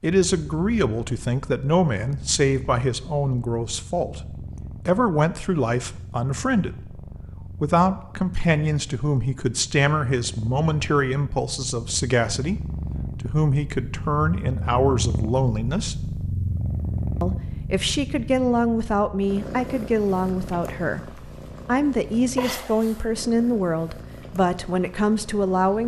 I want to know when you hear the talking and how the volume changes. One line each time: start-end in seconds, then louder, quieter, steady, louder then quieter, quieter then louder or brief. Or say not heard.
0.0-15.9 steady
17.2-25.8 steady.